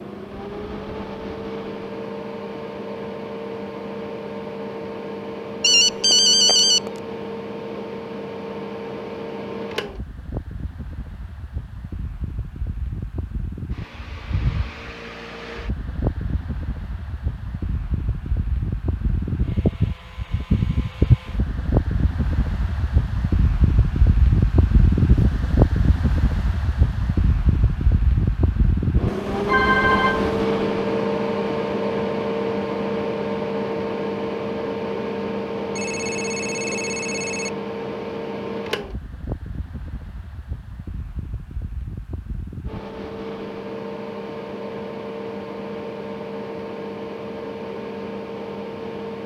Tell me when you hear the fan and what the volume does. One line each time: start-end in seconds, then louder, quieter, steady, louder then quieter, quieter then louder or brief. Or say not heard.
0.0-49.2 louder then quieter.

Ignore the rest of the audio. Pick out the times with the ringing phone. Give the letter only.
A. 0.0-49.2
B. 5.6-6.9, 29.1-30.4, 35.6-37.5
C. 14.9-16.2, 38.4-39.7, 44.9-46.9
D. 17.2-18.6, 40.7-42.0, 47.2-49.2
B.